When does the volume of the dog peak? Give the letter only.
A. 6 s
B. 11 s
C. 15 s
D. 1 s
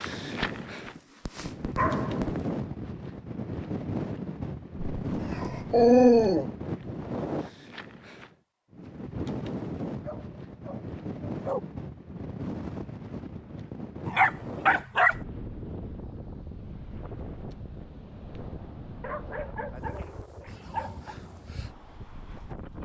A.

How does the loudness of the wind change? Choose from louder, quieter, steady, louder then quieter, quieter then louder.
quieter.